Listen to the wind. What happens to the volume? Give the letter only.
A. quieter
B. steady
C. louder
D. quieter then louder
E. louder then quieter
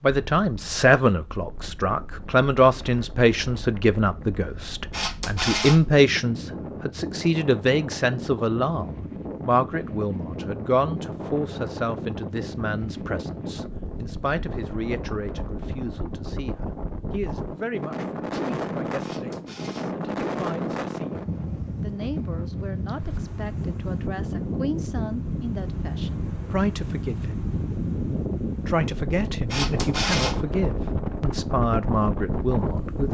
C.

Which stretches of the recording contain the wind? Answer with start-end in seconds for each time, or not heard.
0.0-33.0.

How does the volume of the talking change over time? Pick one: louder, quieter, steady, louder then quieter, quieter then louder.
quieter then louder.